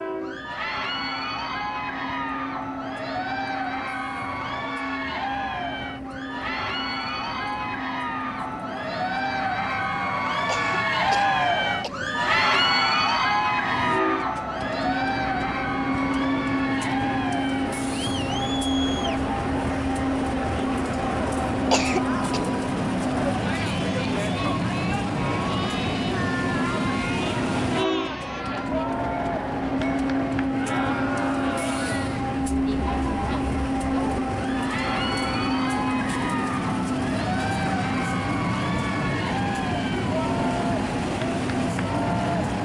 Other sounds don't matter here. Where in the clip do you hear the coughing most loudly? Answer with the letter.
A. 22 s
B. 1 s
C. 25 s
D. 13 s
A.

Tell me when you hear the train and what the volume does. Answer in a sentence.
The train can be heard from 0.0 to 42.5 s, getting louder.